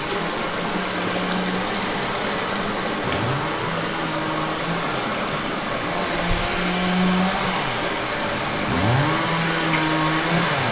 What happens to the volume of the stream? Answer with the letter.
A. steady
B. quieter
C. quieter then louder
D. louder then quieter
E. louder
A.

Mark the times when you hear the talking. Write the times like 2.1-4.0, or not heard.
not heard.